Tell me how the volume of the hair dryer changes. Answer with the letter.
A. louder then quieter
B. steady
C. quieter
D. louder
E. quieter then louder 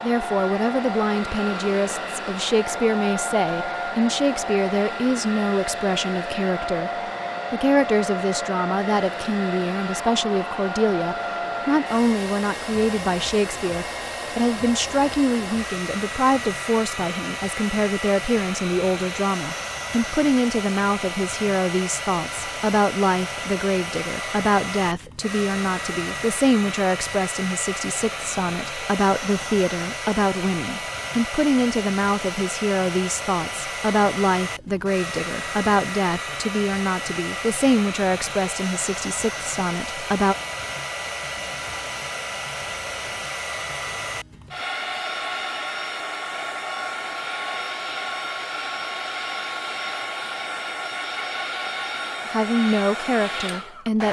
B.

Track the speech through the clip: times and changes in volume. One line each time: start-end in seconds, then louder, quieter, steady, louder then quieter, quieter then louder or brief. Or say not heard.
0.0-6.9 steady
7.5-40.4 steady
52.2-54.0 brief.